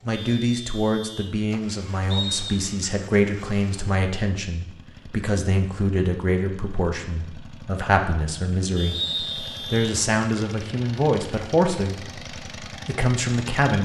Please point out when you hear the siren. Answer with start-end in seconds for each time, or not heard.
not heard.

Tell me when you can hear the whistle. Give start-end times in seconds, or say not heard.
2.1-2.6, 8.9-9.8.